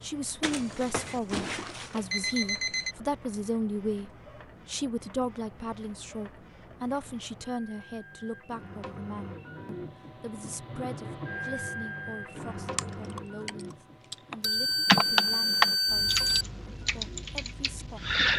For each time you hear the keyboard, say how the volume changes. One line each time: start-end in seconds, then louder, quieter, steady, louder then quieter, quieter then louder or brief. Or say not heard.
12.8-18.3 louder then quieter.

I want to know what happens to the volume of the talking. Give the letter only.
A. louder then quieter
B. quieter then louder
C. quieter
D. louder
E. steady
C.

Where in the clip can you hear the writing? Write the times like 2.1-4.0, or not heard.
not heard.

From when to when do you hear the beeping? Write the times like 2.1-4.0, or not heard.
0.4-3.0, 14.4-16.4.